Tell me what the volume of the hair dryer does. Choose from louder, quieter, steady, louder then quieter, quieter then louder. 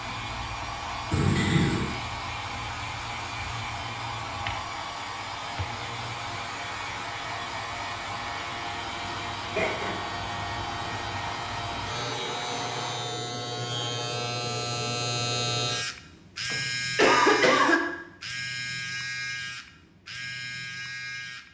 steady.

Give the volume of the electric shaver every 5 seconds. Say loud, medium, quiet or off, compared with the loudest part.
medium, medium, loud, loud, medium.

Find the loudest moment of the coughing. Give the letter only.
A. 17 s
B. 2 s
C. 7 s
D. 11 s
A.